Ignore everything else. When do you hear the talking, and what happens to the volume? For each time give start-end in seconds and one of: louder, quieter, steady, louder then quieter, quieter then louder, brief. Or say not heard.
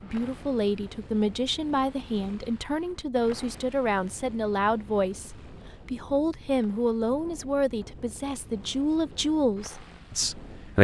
0.0-10.7 steady.